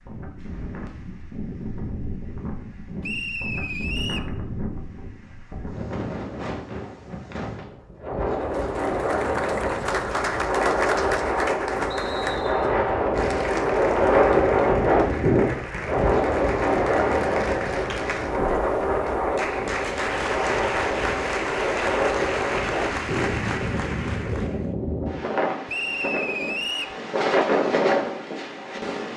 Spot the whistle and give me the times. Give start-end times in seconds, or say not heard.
3.0-4.3, 11.9-12.8, 25.6-26.9.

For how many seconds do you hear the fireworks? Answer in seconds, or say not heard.
not heard.